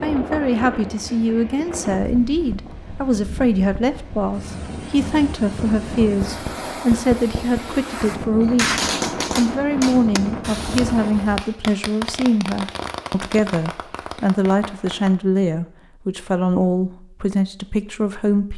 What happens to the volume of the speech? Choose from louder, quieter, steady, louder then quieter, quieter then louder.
steady.